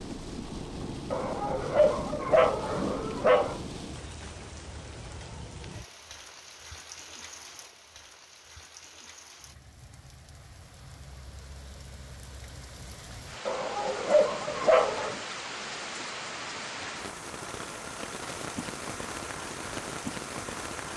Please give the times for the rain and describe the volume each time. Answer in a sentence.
You can hear the rain from 0.0 to 20.9 s, getting quieter then louder.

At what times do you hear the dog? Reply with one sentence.
The dog can be heard from 1.1 to 3.6 s and from 13.4 to 15.2 s.